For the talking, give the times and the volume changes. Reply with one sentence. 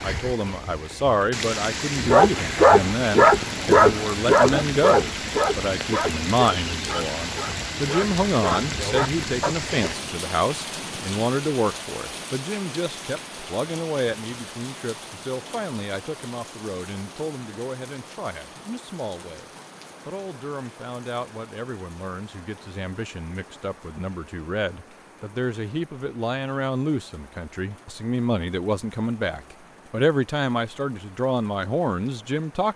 The talking can be heard from 0.0 to 19.4 s, getting quieter; and from 20.1 to 32.7 s, getting louder.